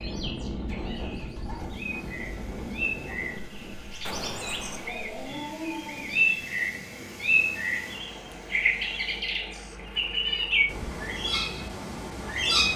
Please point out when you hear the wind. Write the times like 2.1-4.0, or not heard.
0.0-9.2.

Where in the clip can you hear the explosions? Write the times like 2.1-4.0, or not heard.
4.0-5.0.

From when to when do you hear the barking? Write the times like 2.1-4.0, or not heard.
4.8-6.5.